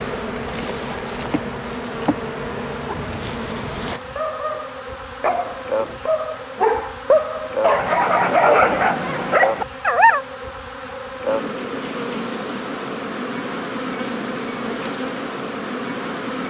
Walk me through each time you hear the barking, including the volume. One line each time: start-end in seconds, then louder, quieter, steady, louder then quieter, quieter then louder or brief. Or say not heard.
2.9-10.2 louder.